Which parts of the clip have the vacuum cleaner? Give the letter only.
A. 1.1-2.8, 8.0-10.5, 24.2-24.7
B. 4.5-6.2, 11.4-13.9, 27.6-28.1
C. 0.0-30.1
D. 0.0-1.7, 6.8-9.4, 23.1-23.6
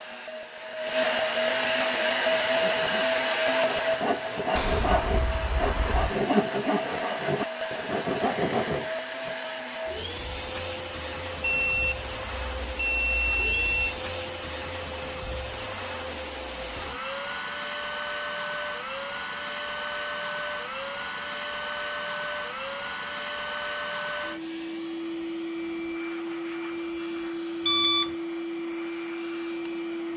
C.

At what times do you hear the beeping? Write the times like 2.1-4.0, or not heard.
4.5-6.2, 11.4-13.9, 27.6-28.1.